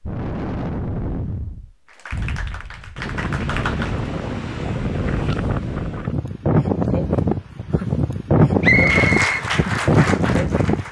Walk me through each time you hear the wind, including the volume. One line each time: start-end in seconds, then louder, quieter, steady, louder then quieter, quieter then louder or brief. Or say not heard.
0.0-10.8 louder.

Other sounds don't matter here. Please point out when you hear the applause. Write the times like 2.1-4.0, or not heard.
1.9-4.1, 8.6-10.8.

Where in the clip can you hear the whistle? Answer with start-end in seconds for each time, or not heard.
8.6-9.4.